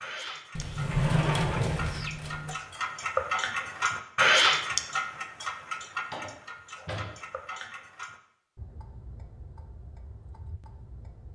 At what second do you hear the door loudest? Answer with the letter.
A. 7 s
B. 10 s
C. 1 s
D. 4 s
C.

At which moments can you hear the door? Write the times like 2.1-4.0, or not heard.
0.6-2.5, 6.0-7.2.